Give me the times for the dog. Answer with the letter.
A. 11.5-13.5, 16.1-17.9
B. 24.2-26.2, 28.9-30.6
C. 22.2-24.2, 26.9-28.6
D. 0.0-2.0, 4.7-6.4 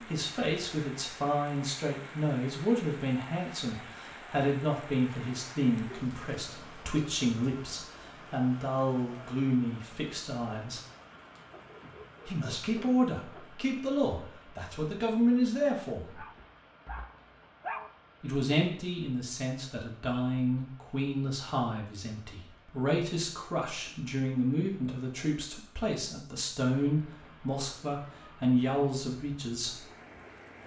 A.